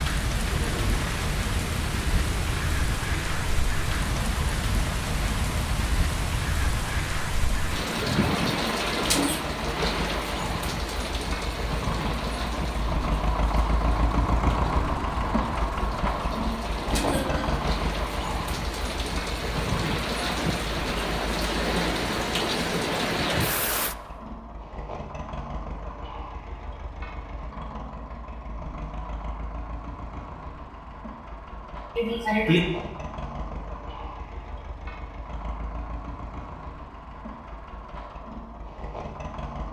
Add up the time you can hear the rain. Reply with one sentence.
You can hear the rain for 24 seconds altogether.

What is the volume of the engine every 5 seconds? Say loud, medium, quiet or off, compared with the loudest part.
medium, medium, loud, loud, medium, medium, medium, medium.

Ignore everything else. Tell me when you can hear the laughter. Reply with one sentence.
You can hear the laughter from 16.9 to 17.6 s and from 31.9 to 32.6 s.